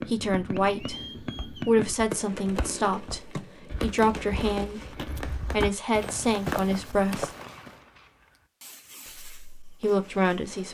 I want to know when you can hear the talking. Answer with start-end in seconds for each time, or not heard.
0.1-7.3, 9.2-10.7.